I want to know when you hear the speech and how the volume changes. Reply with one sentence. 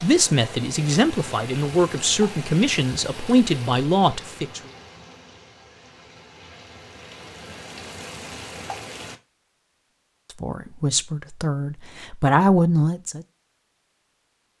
You can hear the speech from 0.0 to 4.6 s, at a steady volume; and briefly from 10.4 to 13.2 s.